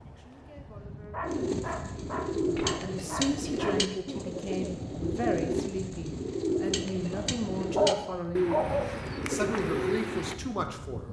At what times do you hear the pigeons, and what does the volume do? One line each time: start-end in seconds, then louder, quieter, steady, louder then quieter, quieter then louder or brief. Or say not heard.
1.2-10.3 steady.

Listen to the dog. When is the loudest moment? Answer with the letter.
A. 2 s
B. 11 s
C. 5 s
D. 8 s
D.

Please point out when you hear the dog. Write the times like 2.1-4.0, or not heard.
1.1-3.8, 7.1-8.9.